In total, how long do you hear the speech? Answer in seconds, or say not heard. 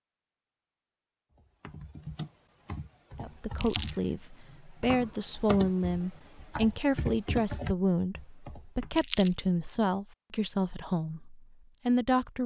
9 s.